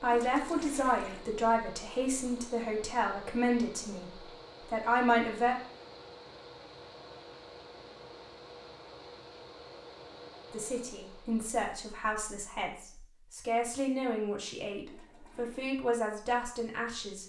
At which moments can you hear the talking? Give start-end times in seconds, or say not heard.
0.0-5.5, 10.5-17.2.